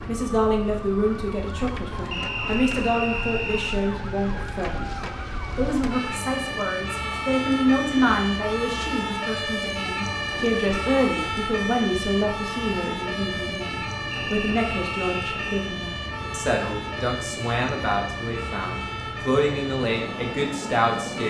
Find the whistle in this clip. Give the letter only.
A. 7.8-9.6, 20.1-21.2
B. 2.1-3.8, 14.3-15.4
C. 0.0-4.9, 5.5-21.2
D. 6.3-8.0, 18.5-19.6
B.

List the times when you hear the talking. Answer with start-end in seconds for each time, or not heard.
0.0-4.9, 5.5-21.2.